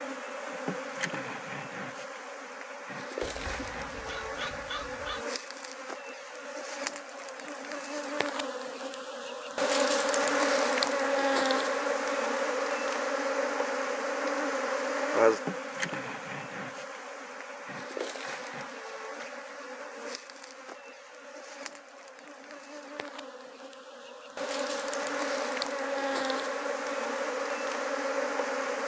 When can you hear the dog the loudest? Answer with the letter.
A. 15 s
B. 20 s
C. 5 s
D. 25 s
C.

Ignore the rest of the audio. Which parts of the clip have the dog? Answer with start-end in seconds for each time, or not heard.
3.2-5.2.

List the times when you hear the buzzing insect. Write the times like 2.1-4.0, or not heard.
0.0-28.8.